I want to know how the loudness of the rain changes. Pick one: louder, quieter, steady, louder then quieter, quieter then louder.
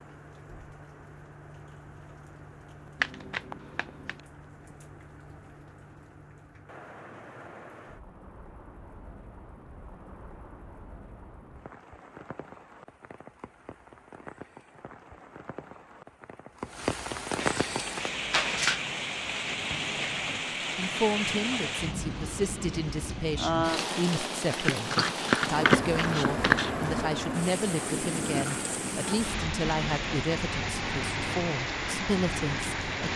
louder.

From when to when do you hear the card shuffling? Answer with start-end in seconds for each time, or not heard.
3.0-4.2, 17.4-18.8, 24.5-26.7.